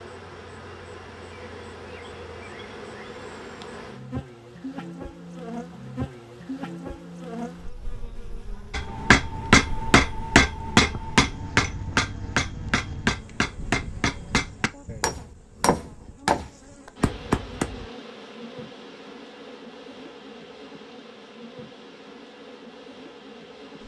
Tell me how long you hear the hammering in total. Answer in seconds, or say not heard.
9 s.